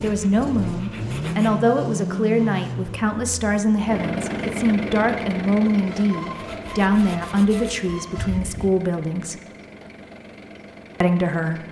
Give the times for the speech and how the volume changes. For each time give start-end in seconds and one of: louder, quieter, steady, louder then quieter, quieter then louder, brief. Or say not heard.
0.0-9.4 steady
11.0-11.6 brief.